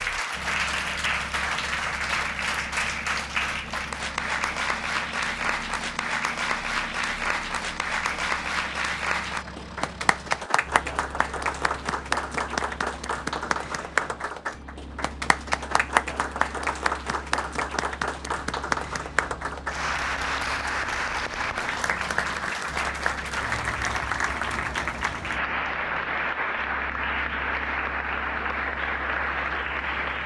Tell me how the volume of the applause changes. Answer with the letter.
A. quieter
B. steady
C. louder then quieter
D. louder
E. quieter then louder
B.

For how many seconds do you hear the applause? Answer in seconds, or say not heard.
30 s.